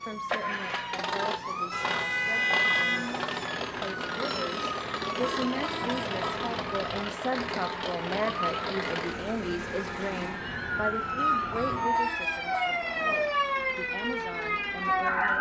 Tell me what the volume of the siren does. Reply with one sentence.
The volume of the siren goes up.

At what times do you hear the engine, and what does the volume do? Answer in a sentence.
The engine can be heard from 0.0 to 15.3 s, getting quieter.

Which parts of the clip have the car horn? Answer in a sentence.
You can hear the car horn from 1.7 to 3.5 s, from 5.2 to 6.5 s and from 11.5 to 13.3 s.